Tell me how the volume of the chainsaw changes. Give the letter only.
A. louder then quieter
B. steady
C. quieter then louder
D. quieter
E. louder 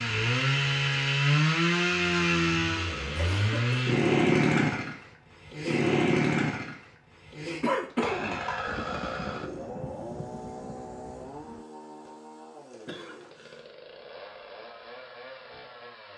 D.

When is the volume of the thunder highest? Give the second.
9 s.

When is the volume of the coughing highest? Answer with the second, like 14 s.
8 s.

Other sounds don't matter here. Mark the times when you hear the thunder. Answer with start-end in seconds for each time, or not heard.
8.7-11.7.